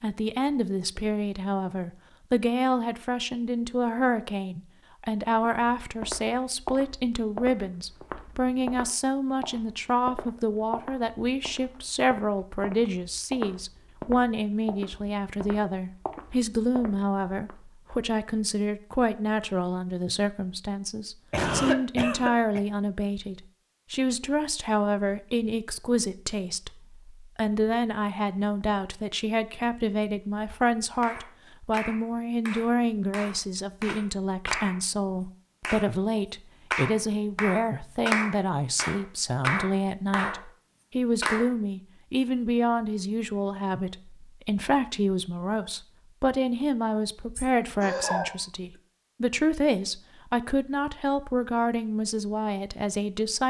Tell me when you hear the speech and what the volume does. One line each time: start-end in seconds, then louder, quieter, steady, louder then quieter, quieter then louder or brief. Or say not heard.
0.0-53.4 steady.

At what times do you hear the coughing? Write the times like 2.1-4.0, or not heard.
21.3-22.6, 47.4-48.4.